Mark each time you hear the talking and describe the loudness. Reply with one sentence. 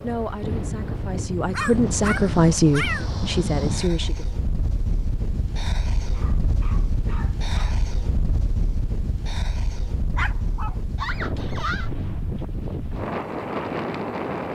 The talking can be heard from 0.0 to 4.2 s, getting louder then quieter.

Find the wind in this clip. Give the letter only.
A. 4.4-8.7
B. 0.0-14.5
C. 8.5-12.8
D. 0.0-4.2
B.